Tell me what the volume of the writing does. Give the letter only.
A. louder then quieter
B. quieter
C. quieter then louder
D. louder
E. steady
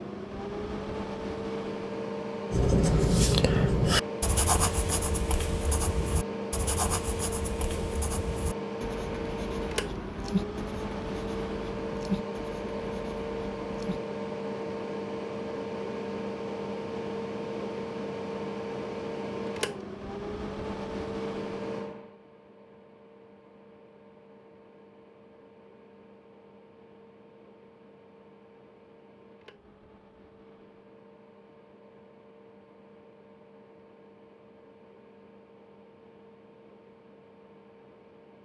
B.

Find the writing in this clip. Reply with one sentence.
The writing can be heard from 2.5 to 14.0 s.